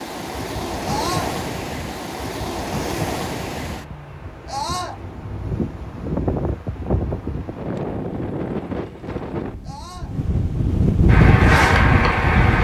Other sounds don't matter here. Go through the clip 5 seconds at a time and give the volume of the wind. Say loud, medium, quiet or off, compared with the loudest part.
medium, medium, loud.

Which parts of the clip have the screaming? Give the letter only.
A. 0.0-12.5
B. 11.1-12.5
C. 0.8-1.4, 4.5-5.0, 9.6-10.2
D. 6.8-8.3
C.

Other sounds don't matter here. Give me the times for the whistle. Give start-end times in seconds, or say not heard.
not heard.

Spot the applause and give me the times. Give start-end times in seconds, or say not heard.
11.1-12.5.